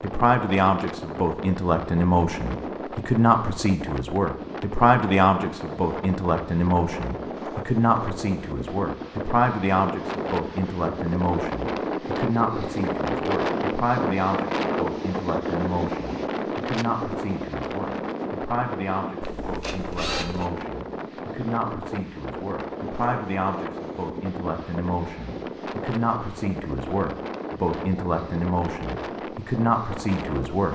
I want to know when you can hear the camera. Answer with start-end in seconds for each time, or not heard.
19.2-20.5.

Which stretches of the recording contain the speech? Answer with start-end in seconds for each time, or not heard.
0.0-30.6.